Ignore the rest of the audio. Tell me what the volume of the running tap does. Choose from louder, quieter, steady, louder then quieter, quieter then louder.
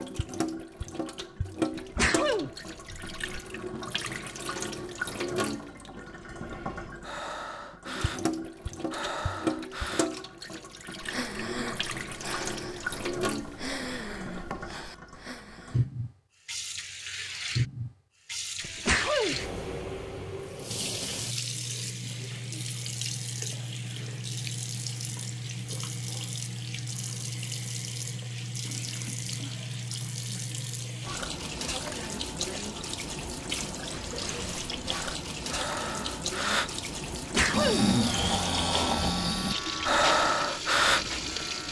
steady.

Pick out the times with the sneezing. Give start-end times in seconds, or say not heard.
1.8-3.1, 18.6-19.4, 37.1-37.9.